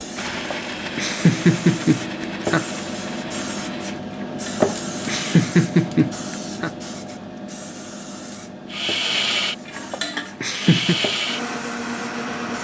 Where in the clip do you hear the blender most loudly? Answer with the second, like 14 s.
9 s.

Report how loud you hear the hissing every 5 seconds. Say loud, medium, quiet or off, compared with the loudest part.
loud, medium, medium.